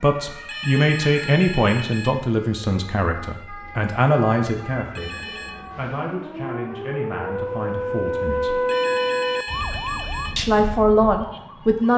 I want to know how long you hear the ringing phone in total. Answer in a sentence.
You can hear the ringing phone for 4 seconds altogether.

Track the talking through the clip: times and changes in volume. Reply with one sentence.
You can hear the talking from 0.0 to 5.2 s, getting quieter then louder; briefly from 5.8 to 8.6 s; and briefly from 10.3 to 11.9 s.